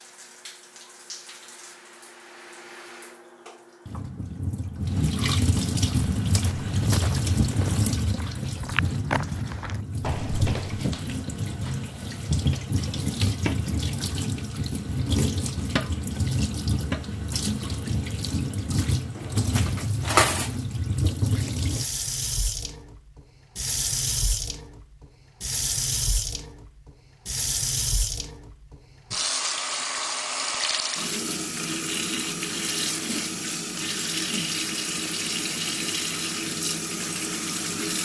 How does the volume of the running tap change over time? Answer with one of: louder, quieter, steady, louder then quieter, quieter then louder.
steady.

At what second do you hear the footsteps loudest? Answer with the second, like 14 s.
9 s.